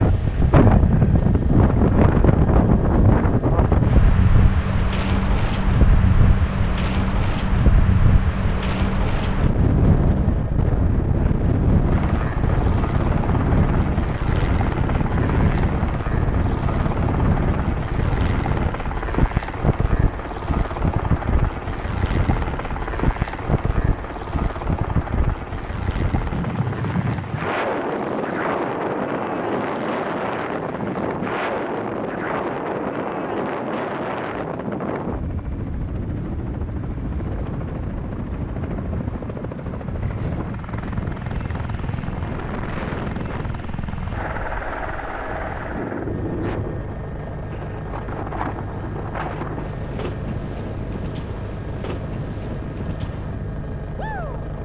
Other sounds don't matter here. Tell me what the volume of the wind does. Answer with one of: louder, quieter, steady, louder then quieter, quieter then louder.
quieter.